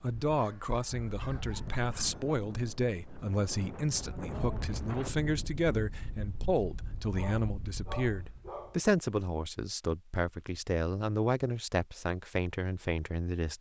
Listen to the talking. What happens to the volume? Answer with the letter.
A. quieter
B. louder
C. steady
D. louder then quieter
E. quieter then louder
C.